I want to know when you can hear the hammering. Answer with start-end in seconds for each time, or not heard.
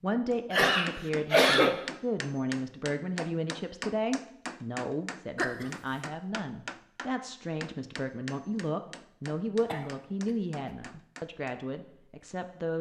0.3-11.6.